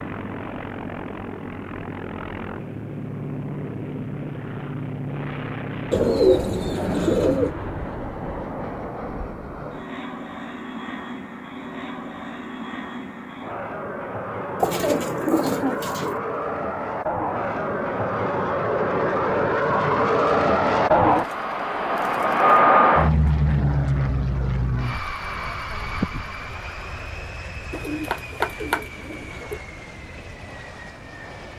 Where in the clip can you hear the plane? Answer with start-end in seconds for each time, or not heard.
0.0-31.5.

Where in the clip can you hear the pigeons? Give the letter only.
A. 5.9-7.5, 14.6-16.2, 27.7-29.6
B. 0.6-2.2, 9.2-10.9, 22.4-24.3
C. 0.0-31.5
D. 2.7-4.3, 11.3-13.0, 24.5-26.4
A.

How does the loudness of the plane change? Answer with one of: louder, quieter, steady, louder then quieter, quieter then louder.
louder then quieter.